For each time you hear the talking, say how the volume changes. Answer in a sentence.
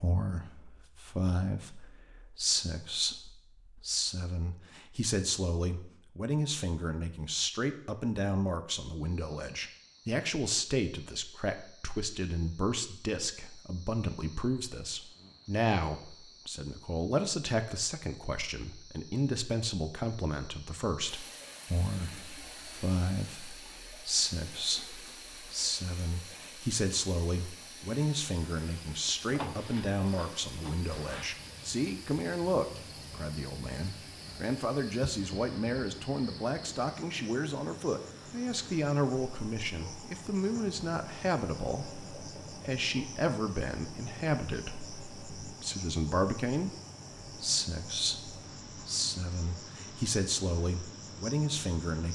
The talking can be heard from 0.0 to 52.0 s, at a steady volume.